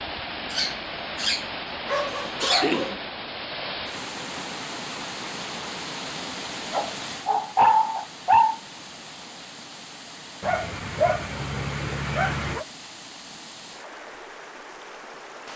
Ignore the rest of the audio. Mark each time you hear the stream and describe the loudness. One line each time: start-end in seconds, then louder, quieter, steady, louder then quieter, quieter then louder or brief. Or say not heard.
0.0-15.5 quieter.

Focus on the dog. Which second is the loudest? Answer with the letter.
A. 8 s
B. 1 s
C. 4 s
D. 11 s
A.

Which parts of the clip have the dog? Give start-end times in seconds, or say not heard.
0.5-3.0, 6.7-8.6, 10.4-12.7.